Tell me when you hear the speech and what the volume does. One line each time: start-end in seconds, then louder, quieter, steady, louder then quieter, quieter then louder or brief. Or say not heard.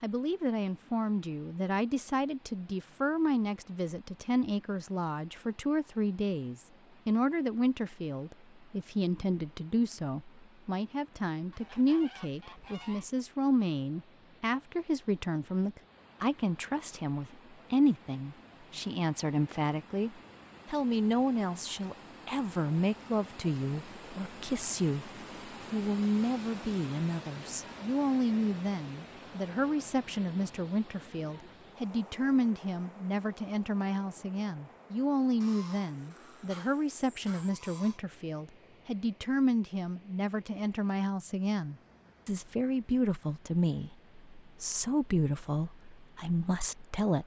0.0-25.1 steady
25.7-47.2 steady.